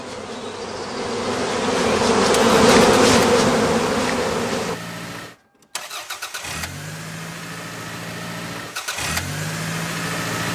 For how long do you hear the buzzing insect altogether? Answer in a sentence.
The buzzing insect can be heard for 5 seconds in total.